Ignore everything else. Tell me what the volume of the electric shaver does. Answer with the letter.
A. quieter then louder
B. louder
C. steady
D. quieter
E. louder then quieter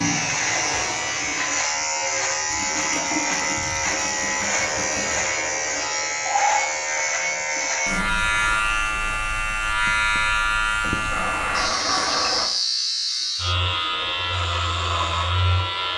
C.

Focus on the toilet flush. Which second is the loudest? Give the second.
12 s.